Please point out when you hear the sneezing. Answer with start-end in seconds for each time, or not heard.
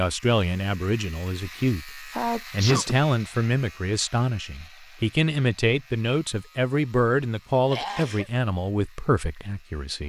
2.1-3.0, 7.7-8.3.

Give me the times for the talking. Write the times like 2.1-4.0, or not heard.
0.0-10.0.